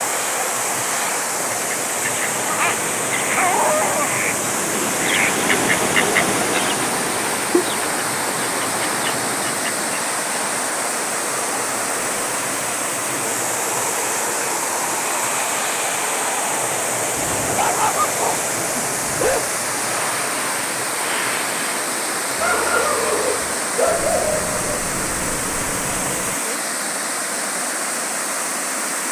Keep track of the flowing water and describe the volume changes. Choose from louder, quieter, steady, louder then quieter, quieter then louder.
steady.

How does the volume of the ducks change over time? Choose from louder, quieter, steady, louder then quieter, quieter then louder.
louder then quieter.